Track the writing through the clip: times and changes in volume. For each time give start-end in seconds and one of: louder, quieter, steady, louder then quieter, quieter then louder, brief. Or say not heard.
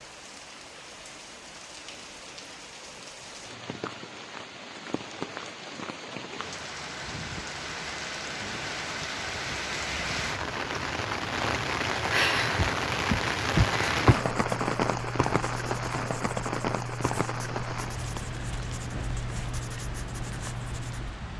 14.2-21.2 steady.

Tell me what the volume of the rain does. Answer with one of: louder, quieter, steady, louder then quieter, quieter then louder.
louder then quieter.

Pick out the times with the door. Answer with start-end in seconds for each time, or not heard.
12.6-14.2.